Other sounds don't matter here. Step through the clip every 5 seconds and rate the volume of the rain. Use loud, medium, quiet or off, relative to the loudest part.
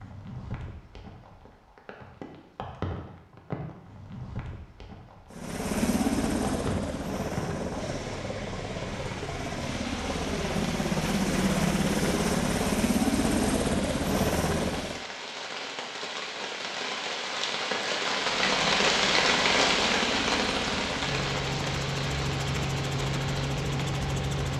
quiet, quiet, quiet, loud, medium.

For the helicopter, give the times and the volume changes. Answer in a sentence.
You can hear the helicopter from 5.3 to 15.0 s, getting quieter then louder; and from 18.2 to 24.5 s, getting louder.